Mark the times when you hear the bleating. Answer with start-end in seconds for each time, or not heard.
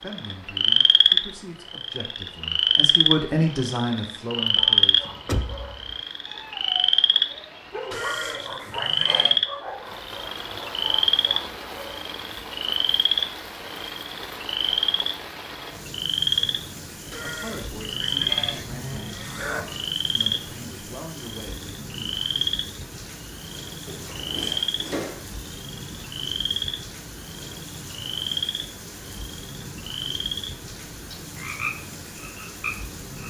7.9-9.4, 17.1-19.9.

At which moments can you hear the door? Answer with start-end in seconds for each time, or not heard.
4.5-6.0, 23.9-25.2.